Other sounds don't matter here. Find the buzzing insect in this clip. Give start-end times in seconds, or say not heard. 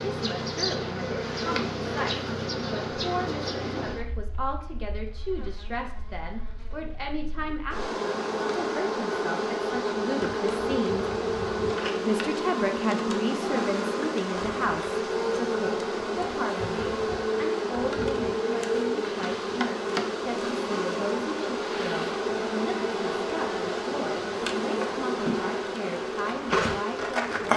0.0-27.5.